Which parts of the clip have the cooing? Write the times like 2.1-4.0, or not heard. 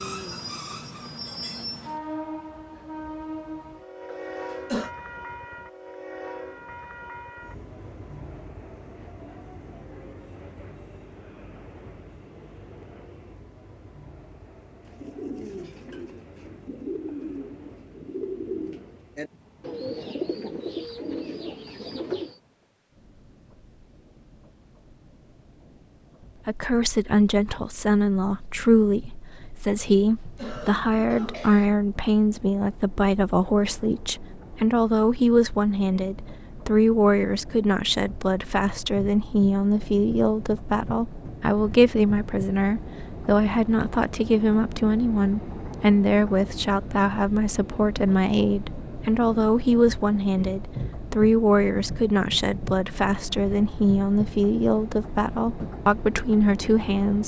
14.8-22.4.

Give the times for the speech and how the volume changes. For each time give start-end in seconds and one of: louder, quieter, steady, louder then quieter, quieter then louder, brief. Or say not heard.
26.4-57.2 steady.